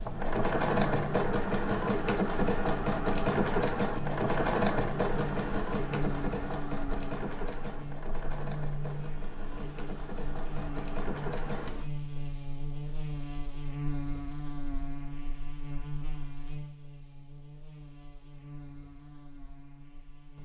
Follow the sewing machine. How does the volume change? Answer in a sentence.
The volume of the sewing machine goes down.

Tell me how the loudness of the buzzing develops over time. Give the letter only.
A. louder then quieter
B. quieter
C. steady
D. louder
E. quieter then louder
B.